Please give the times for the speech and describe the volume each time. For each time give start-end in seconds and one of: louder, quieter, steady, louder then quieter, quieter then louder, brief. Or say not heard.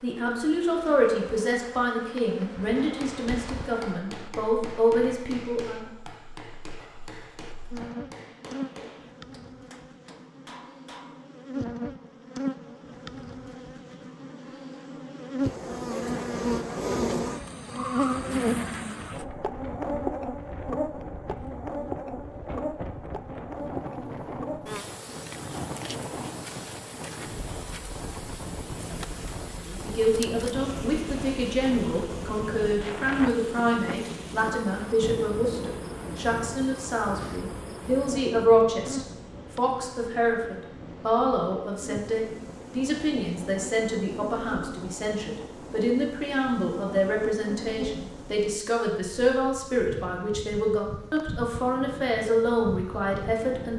0.0-5.8 quieter then louder
29.6-53.7 steady.